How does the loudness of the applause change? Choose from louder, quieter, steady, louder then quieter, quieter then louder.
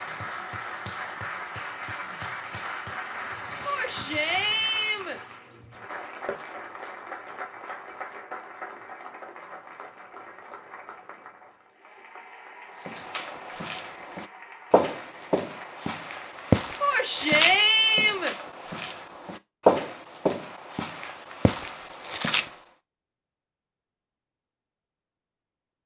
quieter.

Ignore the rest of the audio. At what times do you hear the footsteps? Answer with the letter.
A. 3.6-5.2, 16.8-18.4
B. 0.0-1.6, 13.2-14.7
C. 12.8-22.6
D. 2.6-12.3
C.